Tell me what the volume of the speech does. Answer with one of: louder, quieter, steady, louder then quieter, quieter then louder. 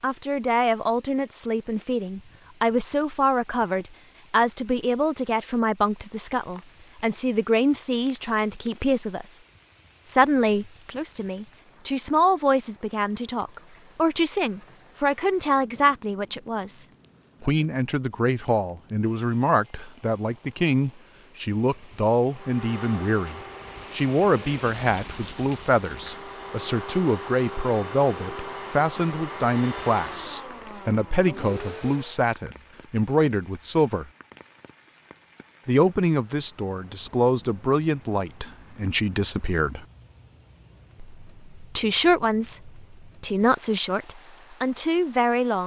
steady.